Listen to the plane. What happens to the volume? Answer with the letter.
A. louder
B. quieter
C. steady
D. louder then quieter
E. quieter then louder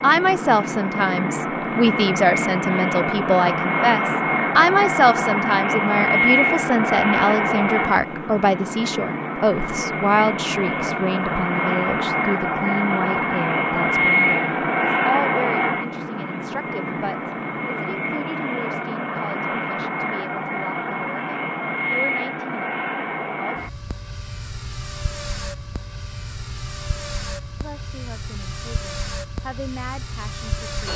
B.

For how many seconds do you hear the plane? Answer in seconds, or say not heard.
31 s.